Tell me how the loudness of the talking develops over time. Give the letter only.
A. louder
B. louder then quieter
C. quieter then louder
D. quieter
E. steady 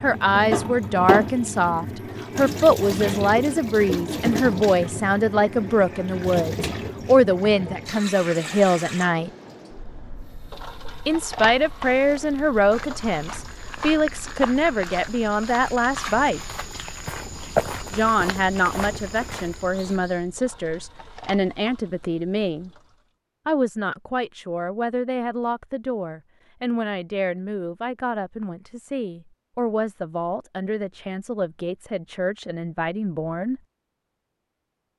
D.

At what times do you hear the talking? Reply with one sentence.
The talking can be heard from 0.0 to 9.3 s, from 11.1 to 16.4 s, from 17.9 to 22.7 s and from 23.4 to 33.6 s.